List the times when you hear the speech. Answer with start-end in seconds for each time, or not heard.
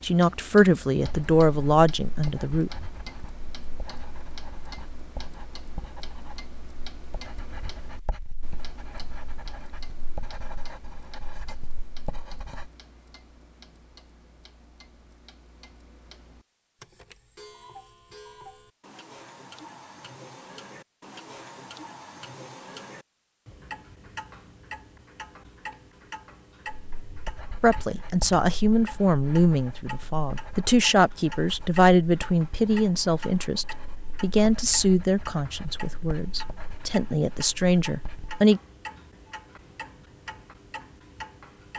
0.0-2.7, 27.6-38.6.